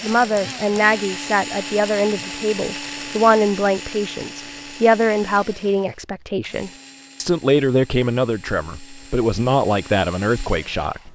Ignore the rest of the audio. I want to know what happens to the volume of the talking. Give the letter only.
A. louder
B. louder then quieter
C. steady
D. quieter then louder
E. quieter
C.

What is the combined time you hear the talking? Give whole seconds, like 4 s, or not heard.
11 s.